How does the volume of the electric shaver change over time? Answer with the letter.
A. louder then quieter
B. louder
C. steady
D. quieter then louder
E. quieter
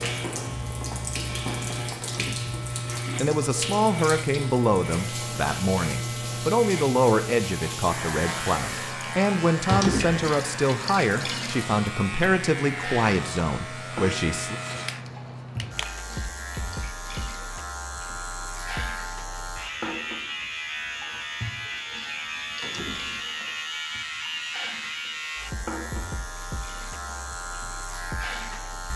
C.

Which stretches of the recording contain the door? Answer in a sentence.
The door can be heard from 2.0 to 2.5 s, from 9.7 to 10.2 s and from 22.6 to 23.2 s.